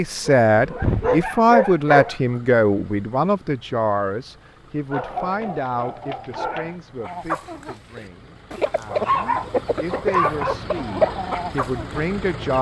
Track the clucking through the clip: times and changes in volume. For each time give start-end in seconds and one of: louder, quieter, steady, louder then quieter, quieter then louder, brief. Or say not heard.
7.0-12.5 louder then quieter.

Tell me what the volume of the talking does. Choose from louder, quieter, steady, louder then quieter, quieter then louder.
quieter then louder.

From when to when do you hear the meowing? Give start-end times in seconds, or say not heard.
not heard.